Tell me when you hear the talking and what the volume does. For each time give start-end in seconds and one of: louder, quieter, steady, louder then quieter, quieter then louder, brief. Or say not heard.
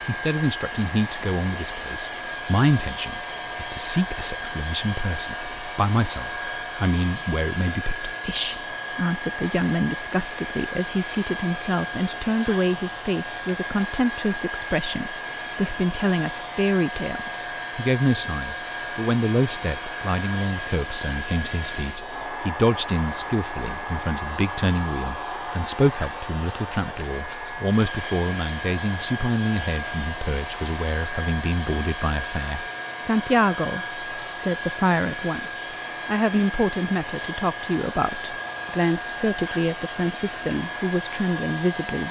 0.1-42.0 steady.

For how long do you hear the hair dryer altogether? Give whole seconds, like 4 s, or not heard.
42 s.